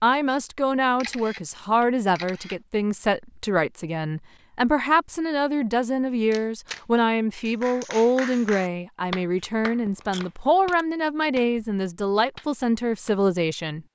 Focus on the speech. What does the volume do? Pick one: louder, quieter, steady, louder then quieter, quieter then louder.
steady.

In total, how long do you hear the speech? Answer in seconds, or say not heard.
14 s.